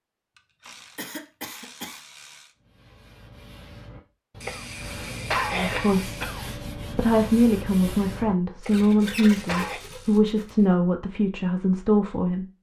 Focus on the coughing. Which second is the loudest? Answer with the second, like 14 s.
5 s.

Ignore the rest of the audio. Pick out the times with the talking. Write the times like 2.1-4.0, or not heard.
5.5-12.4.